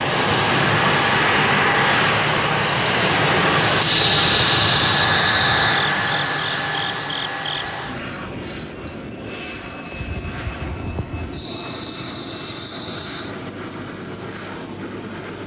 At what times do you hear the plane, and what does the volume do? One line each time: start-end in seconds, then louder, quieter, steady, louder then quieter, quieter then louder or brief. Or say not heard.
0.0-15.4 quieter.